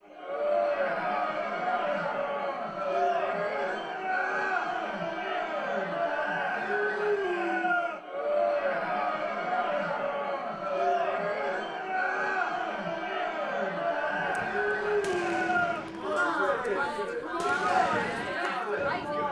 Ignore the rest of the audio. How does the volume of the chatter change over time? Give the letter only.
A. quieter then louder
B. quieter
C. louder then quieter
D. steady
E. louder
D.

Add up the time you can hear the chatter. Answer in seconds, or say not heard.
19 s.